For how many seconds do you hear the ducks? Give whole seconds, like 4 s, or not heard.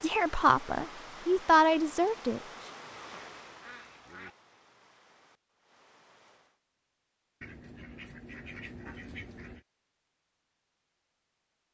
4 s.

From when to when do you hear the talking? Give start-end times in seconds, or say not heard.
0.0-2.4.